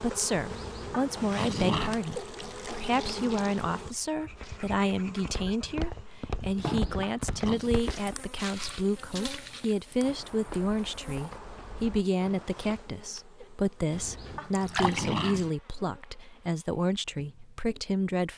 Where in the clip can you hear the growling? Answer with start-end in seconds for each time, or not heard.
0.5-2.0, 6.5-7.8, 13.9-15.5.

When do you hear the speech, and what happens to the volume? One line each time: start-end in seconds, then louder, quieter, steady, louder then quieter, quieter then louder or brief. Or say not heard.
0.0-18.3 steady.